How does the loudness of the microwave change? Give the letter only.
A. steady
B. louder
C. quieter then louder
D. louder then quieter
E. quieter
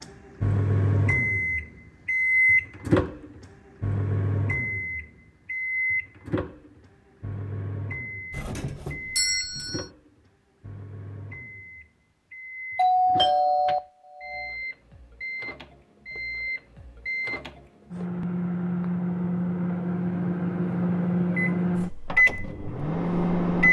C.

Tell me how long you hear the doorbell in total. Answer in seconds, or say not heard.
3 s.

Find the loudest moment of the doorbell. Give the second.
13 s.